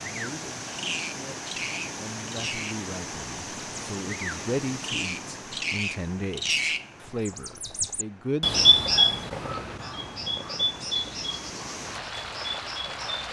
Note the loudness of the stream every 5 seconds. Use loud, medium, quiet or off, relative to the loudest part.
loud, medium, loud.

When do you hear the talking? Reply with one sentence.
The talking can be heard from 0.0 to 8.6 s.